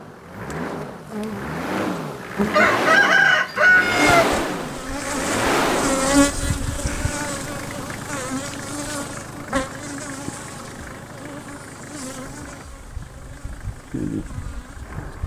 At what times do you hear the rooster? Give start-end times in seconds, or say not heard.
2.5-4.3.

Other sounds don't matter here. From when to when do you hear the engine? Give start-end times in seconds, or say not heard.
0.0-15.2.